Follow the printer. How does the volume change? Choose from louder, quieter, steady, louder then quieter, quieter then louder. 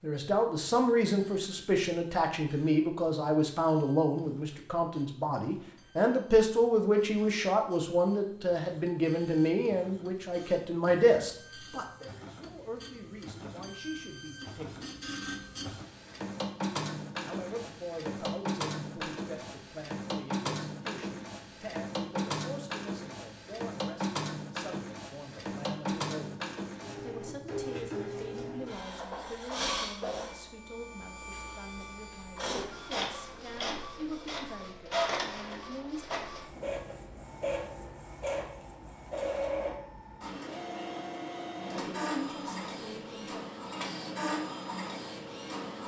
louder.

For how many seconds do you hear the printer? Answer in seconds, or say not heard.
46 s.